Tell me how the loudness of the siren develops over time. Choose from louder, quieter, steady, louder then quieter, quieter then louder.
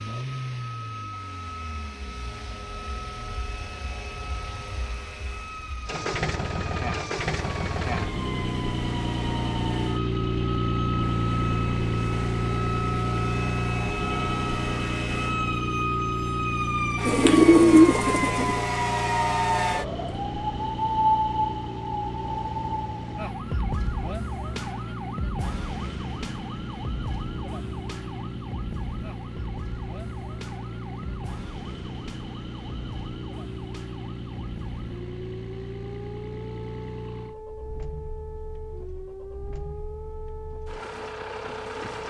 louder then quieter.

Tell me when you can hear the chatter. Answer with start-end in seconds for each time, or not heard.
not heard.